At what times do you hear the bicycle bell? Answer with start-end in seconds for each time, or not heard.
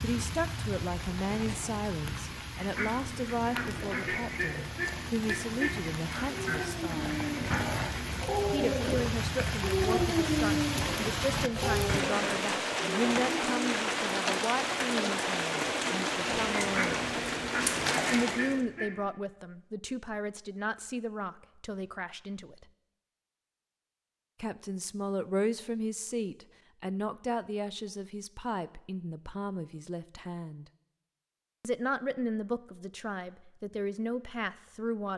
not heard.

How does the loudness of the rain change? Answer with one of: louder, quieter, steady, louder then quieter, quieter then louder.
louder.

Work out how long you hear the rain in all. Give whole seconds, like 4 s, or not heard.
19 s.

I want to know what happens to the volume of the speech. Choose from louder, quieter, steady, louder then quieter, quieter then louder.
steady.